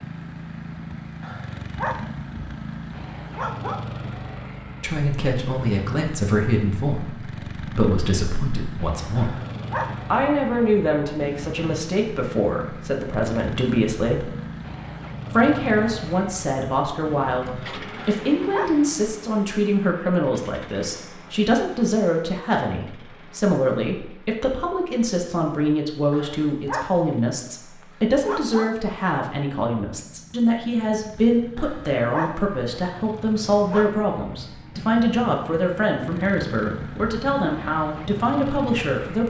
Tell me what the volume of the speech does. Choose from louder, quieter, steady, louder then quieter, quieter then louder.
steady.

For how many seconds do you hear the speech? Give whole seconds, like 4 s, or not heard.
33 s.